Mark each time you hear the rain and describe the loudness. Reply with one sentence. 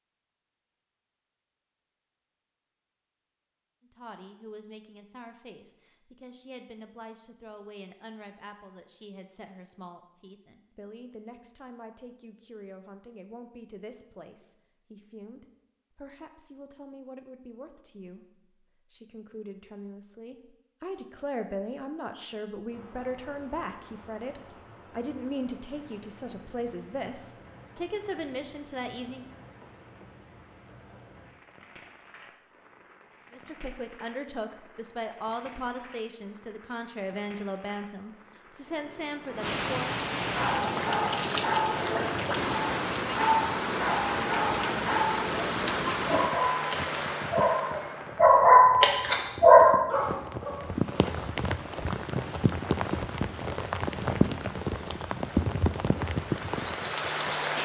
You can hear the rain from 22.6 to 57.6 s, getting louder.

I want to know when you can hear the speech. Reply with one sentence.
You can hear the speech from 3.8 to 29.2 s and from 33.3 to 40.0 s.